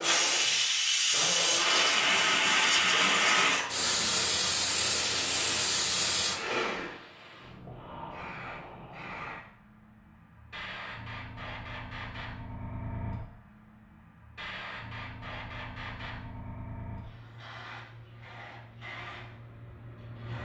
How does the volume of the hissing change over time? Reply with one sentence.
The loudness of the hissing goes down.